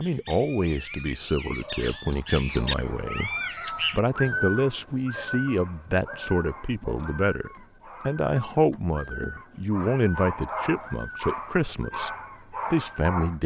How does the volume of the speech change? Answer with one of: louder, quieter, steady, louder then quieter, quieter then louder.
steady.